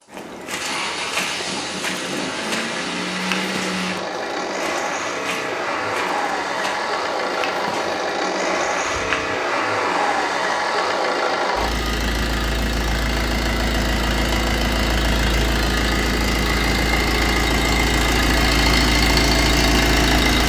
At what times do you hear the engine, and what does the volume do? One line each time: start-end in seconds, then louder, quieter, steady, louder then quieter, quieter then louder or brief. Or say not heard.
0.0-20.4 louder.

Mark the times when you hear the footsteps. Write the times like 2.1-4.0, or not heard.
0.1-9.2.